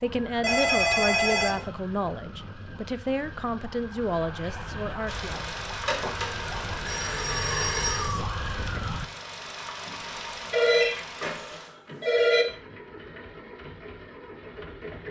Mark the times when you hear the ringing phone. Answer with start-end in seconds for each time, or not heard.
0.4-1.6, 5.8-8.2, 10.5-12.4.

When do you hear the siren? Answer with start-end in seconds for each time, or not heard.
0.0-9.1.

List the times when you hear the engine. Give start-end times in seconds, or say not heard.
5.0-15.0.